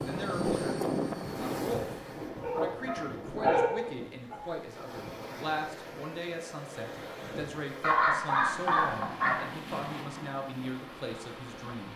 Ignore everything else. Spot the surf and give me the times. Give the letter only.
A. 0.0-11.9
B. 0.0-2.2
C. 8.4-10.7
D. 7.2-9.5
A.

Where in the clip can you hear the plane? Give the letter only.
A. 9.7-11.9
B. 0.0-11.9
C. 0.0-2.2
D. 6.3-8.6
C.